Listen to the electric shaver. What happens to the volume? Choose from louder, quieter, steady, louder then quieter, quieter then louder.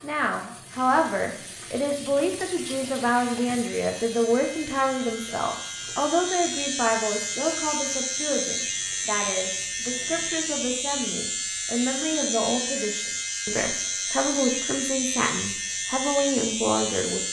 louder.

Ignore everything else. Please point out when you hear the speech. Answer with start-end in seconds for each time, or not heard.
0.0-17.2.